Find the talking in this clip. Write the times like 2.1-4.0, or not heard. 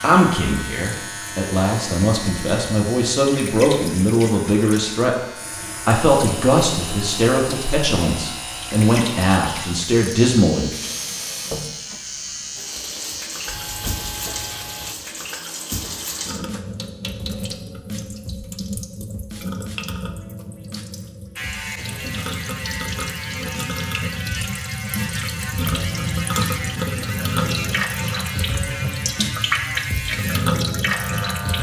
0.0-5.2, 5.8-10.7.